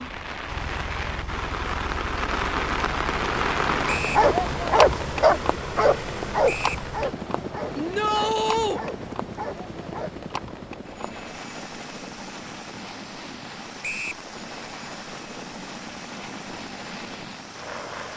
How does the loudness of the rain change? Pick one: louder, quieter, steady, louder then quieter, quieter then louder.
quieter.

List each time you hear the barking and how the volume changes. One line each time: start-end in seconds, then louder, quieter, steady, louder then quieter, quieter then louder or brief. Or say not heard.
4.2-10.1 quieter.